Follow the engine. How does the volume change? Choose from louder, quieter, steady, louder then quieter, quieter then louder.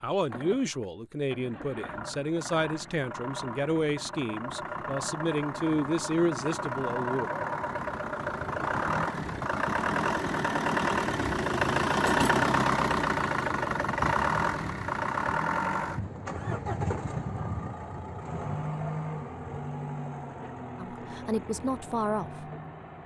louder then quieter.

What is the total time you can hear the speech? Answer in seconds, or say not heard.
9 s.